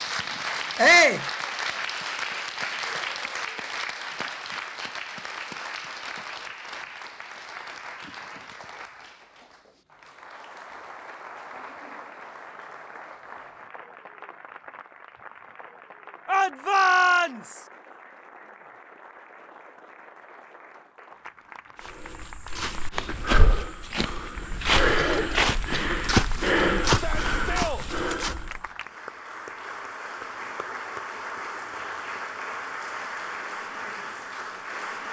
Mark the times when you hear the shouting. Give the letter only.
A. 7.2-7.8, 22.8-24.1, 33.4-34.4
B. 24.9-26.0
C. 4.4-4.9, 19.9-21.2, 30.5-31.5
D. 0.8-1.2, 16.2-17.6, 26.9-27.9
D.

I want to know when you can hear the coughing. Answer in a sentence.
The coughing can be heard from 24.9 to 26.0 s.